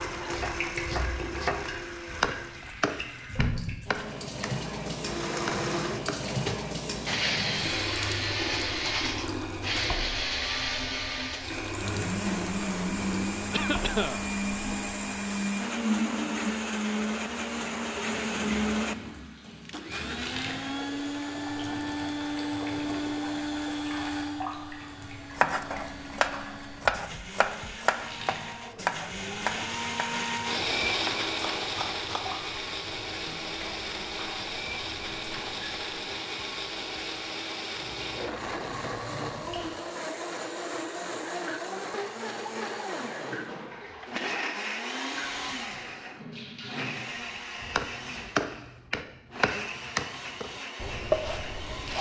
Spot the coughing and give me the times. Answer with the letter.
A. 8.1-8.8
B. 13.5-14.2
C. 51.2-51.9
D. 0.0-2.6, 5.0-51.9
B.